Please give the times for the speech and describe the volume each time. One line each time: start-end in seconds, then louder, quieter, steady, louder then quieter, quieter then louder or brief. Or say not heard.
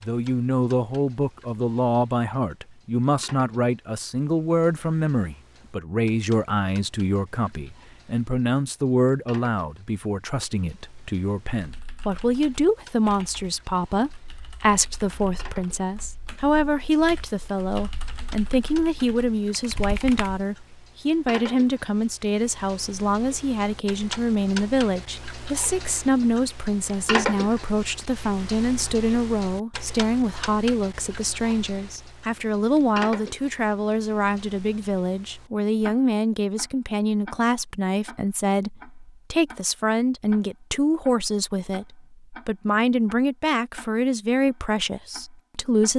0.0-45.9 steady.